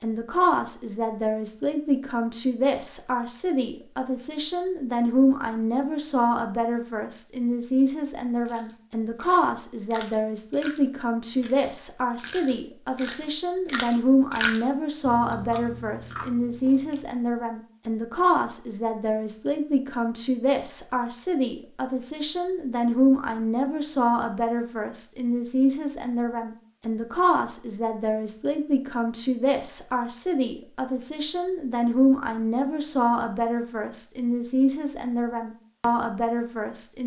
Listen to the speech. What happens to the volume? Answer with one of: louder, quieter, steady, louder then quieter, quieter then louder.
steady.